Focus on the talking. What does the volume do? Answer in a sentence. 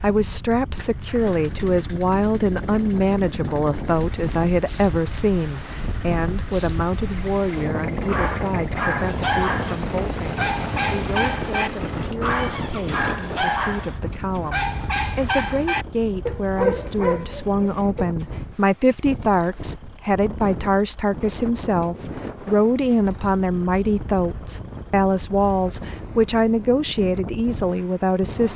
The volume of the talking goes down, then up.